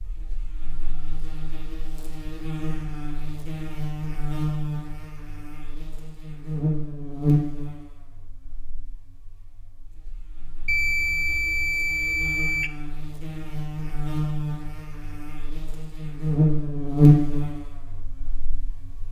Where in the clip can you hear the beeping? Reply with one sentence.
The beeping can be heard from 10.7 to 12.7 s.